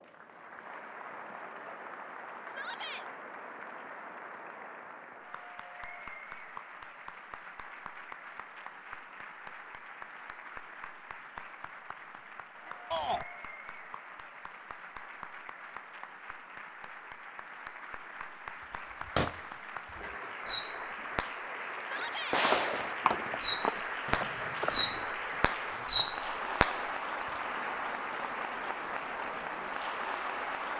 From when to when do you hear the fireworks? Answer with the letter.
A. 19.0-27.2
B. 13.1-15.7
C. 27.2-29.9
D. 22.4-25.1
A.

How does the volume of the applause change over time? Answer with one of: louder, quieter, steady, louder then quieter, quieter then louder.
louder.